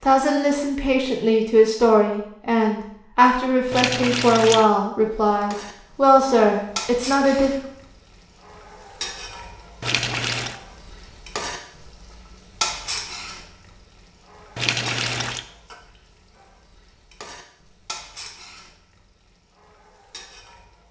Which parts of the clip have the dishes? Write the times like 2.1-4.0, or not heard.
not heard.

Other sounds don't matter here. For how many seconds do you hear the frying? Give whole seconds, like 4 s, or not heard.
16 s.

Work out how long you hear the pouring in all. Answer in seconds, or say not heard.
3 s.